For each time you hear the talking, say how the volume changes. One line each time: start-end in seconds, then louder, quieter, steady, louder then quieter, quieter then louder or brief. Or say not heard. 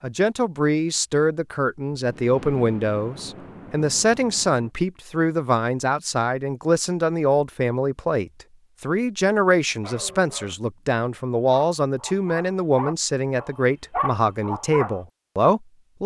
0.0-16.0 steady.